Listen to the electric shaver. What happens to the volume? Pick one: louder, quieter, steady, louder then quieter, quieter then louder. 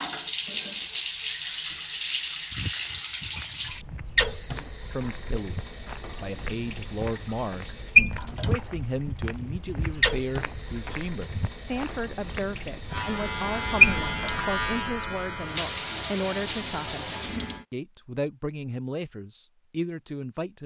quieter.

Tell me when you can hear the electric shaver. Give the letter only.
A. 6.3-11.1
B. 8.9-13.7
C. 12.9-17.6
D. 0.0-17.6
C.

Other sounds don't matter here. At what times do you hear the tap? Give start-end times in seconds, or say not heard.
0.0-17.6.